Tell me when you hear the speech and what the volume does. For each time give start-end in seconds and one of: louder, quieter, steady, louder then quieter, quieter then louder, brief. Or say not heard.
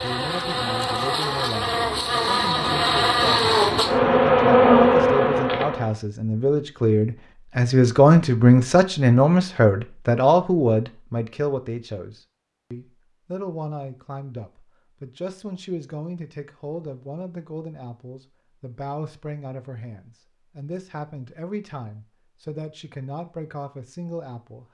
0.0-24.6 louder then quieter.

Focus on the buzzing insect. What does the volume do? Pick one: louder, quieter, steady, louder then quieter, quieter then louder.
louder.